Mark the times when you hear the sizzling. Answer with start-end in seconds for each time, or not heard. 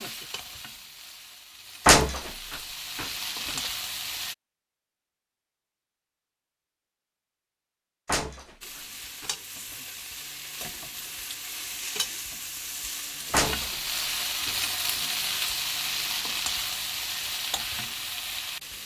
0.0-4.3, 8.6-18.8.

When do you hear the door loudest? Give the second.
2 s.